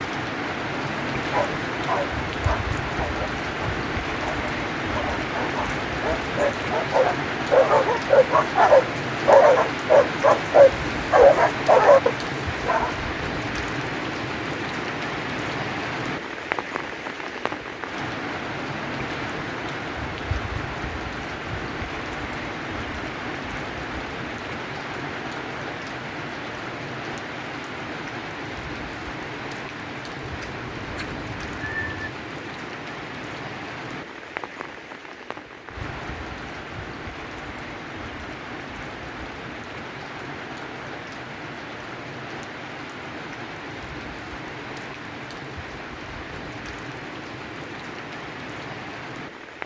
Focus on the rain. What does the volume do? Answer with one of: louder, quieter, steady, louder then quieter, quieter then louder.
quieter.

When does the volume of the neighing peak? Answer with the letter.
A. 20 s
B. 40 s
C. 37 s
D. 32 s
D.